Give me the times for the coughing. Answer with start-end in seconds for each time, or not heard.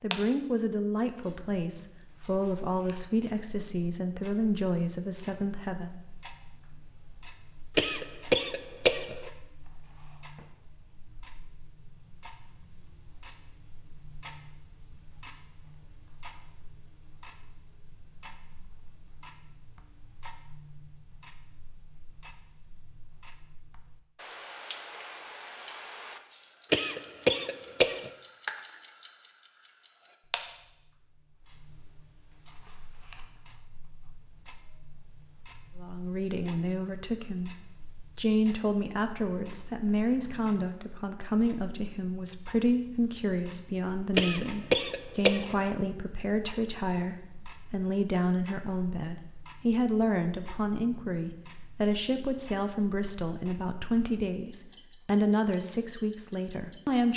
7.8-9.3, 26.7-28.1, 44.1-45.5.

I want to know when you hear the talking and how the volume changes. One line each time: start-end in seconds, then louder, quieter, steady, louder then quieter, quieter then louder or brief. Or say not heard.
0.0-6.0 steady
35.8-57.1 steady.